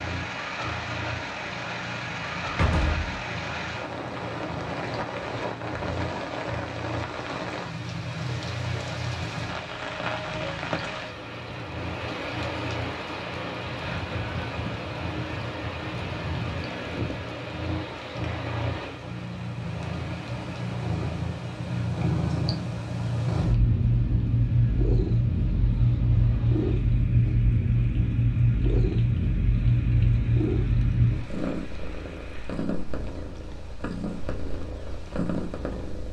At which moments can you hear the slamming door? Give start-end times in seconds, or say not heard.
2.5-3.1.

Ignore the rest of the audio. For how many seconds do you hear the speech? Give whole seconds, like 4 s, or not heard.
not heard.